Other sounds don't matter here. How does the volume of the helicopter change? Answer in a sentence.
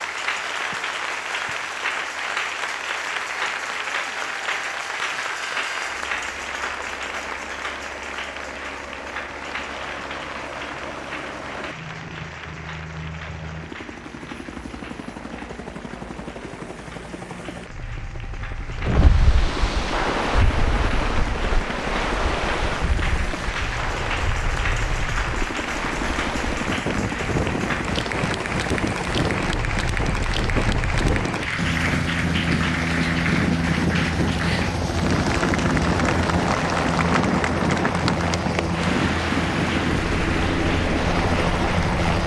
The volume of the helicopter goes up.